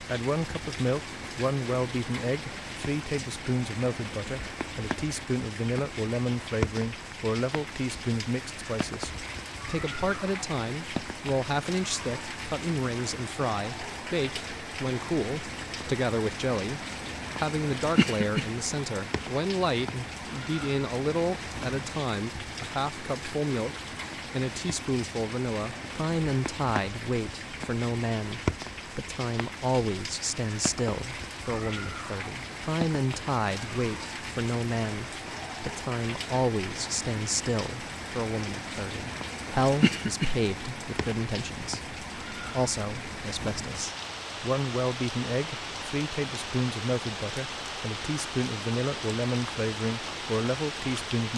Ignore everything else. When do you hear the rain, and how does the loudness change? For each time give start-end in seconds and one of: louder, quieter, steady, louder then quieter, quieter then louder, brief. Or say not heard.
0.0-51.3 steady.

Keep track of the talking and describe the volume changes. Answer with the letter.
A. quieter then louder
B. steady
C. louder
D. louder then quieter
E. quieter
B.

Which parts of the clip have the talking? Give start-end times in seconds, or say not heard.
0.0-51.3.